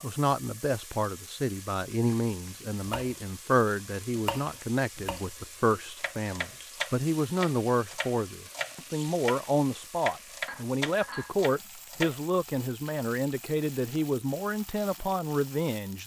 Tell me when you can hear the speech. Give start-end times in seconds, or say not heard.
0.0-16.0.